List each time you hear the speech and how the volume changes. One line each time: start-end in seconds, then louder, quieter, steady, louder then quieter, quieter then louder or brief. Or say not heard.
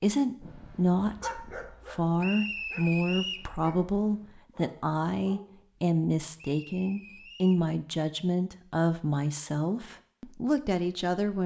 0.0-11.4 steady.